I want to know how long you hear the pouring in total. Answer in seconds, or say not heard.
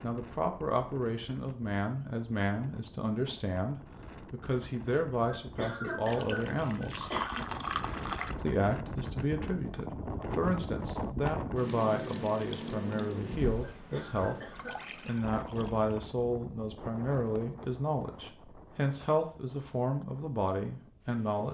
4 s.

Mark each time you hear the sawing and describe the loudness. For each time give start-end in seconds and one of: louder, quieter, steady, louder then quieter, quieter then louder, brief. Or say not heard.
not heard.